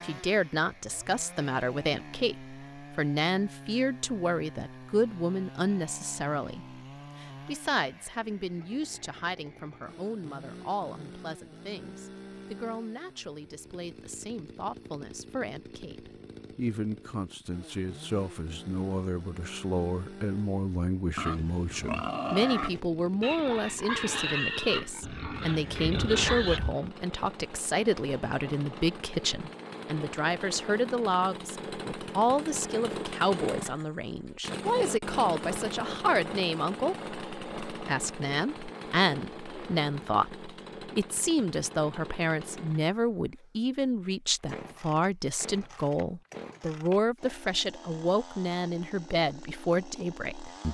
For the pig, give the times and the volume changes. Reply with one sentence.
The pig can be heard from 21.1 to 26.6 s, at a steady volume.